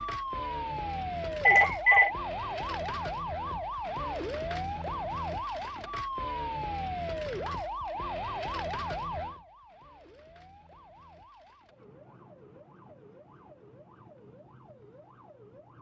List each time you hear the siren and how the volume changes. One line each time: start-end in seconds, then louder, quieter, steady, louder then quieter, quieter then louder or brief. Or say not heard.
0.0-15.7 quieter.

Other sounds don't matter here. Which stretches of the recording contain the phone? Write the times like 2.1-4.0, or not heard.
1.4-2.1.